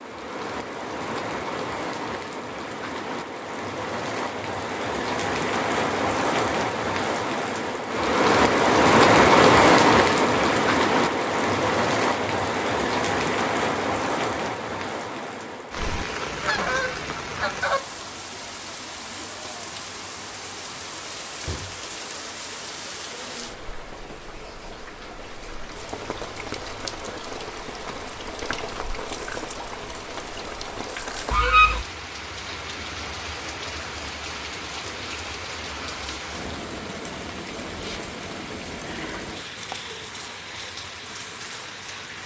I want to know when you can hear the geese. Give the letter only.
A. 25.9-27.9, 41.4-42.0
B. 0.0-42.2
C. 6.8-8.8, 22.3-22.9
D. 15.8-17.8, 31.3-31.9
D.